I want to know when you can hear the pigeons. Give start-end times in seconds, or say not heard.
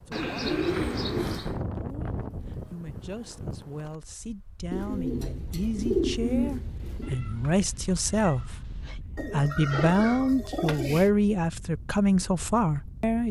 0.1-1.6, 4.7-7.2, 9.2-11.1.